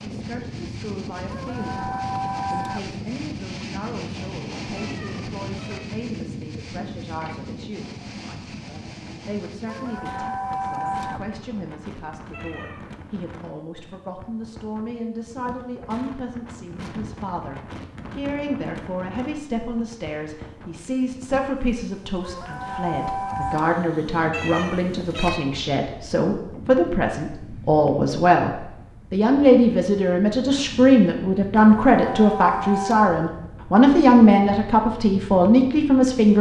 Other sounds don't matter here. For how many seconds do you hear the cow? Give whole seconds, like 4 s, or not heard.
6 s.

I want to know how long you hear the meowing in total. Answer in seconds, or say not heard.
3 s.